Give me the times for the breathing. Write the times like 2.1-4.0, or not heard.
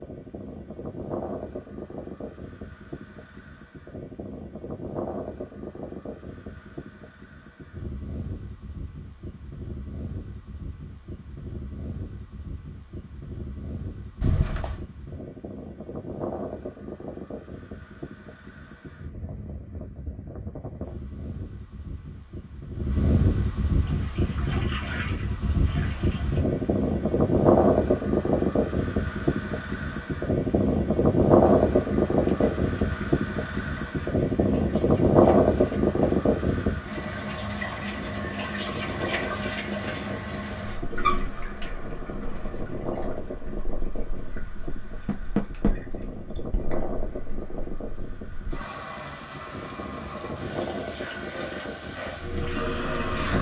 not heard.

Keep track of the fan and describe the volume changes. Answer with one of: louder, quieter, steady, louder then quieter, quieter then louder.
louder then quieter.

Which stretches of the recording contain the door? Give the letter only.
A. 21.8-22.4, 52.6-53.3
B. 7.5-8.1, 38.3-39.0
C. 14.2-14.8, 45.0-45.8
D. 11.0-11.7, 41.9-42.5
C.